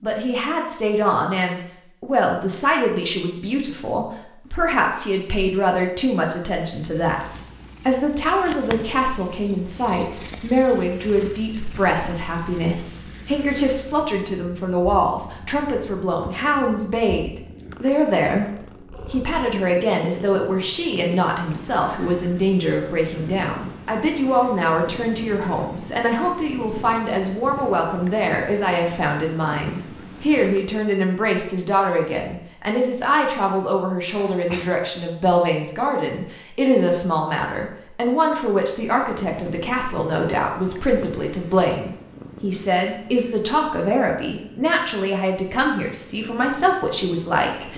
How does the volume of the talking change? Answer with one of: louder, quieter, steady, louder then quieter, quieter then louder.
steady.